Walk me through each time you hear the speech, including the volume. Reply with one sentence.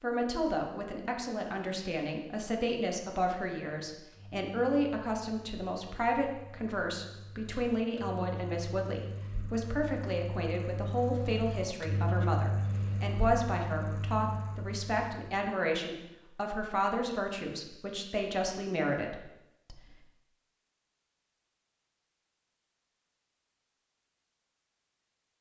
The speech can be heard from 0.0 to 19.8 s, at a steady volume.